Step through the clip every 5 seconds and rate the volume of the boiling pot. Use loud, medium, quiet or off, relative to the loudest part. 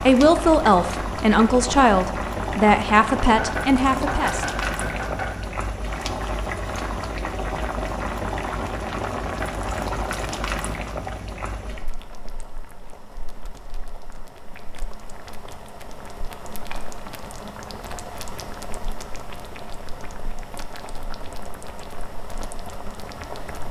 loud, loud, medium, medium, medium.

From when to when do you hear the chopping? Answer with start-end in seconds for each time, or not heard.
3.4-5.3.